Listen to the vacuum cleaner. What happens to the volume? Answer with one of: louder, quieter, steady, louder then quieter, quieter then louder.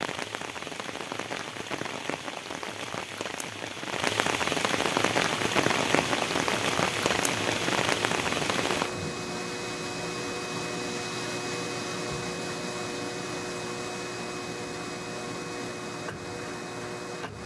steady.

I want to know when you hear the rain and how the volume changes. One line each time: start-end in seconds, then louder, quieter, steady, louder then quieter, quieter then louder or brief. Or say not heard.
0.0-8.9 louder.